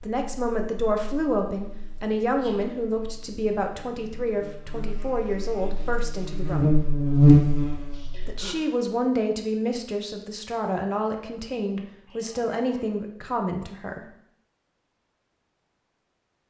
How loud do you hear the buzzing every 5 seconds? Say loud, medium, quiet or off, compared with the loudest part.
quiet, loud, off, off.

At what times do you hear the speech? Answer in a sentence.
You can hear the speech from 0.0 to 6.8 s and from 8.2 to 14.1 s.